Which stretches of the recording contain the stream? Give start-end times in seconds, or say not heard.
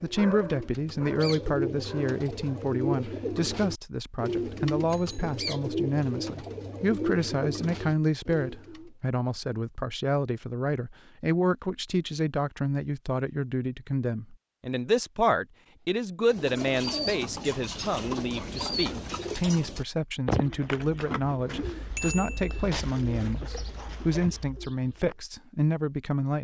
not heard.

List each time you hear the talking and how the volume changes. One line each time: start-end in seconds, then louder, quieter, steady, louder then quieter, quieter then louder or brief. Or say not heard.
0.0-26.3 steady.